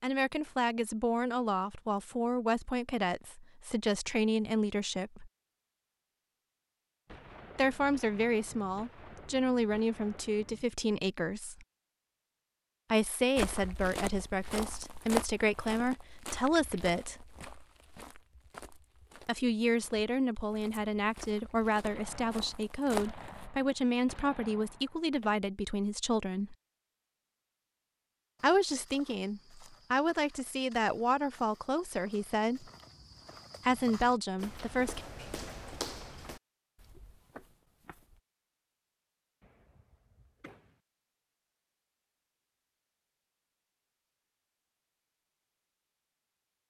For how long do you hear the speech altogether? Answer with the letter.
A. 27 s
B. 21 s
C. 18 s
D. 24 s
A.